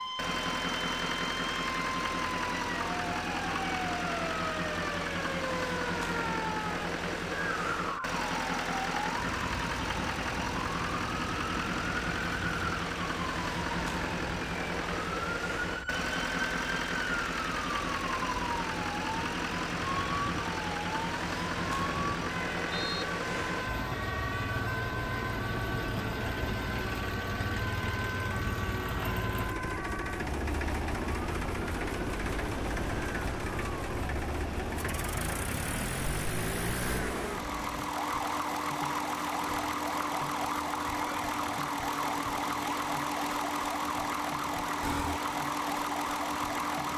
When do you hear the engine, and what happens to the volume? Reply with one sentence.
The engine can be heard from 0.0 to 46.9 s, at a steady volume.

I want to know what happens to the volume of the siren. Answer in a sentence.
The volume of the siren stays about the same.